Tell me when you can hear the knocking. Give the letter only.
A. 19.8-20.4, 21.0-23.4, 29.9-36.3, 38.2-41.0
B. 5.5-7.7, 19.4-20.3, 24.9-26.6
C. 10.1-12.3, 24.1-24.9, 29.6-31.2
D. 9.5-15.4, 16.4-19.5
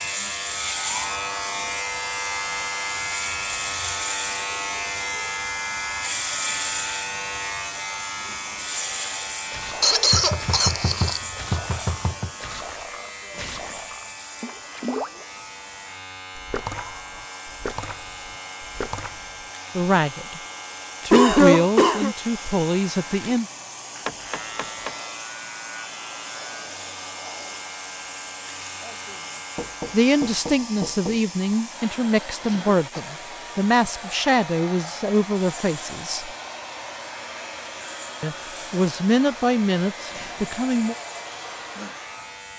C.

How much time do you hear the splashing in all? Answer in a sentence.
The splashing can be heard for 9 seconds in total.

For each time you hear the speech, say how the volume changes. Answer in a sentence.
You can hear the speech briefly from 19.8 to 20.4 s; briefly from 21.0 to 23.4 s; from 29.9 to 36.3 s, at a steady volume; and briefly from 38.2 to 41.0 s.